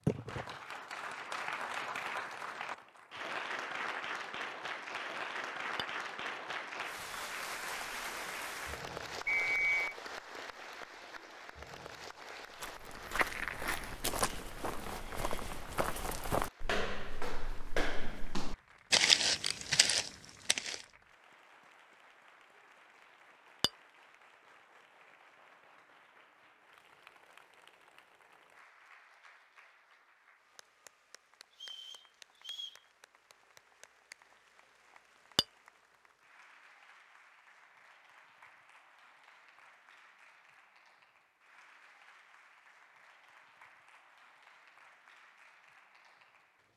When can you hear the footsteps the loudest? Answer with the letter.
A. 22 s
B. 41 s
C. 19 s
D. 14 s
C.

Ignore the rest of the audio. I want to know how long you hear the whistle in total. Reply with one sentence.
You can hear the whistle for 2 seconds altogether.